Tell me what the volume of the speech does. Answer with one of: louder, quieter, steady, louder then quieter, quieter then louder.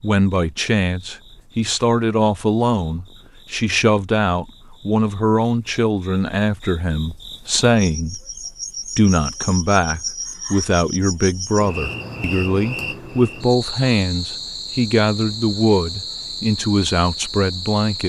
steady.